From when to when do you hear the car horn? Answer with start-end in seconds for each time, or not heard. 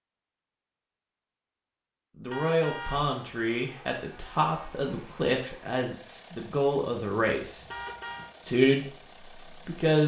2.3-3.1, 7.7-8.3.